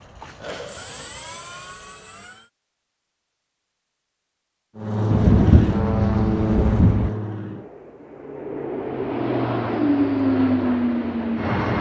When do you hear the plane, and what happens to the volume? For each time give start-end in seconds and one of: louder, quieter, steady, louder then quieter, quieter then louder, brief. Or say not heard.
0.0-2.5 brief
4.8-11.7 quieter then louder.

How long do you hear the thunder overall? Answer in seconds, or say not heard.
2 s.